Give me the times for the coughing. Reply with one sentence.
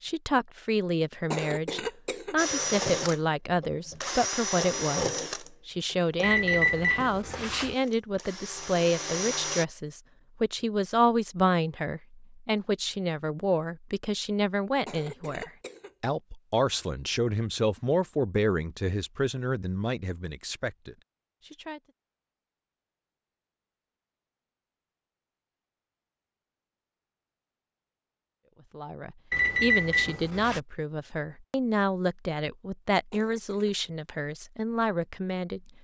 The coughing can be heard from 1.3 to 2.4 s, from 14.8 to 15.9 s and from 33.1 to 33.8 s.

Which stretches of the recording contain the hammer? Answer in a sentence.
The hammer can't be heard in this clip.